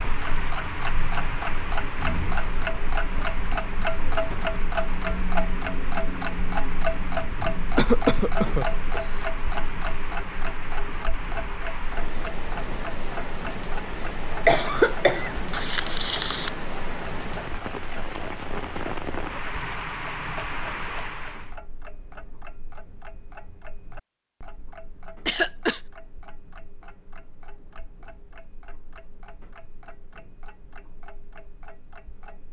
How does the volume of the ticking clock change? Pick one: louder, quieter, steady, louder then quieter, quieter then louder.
quieter.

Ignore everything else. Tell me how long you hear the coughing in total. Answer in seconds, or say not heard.
3 s.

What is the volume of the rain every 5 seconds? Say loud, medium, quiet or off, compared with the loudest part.
loud, medium, loud, loud, loud, off, off.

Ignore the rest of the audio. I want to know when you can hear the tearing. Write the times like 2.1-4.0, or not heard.
15.5-16.6.